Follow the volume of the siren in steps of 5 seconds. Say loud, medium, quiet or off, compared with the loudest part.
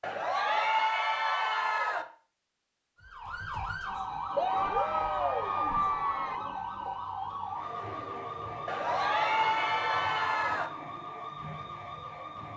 loud, loud, medium.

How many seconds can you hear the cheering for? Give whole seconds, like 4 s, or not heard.
6 s.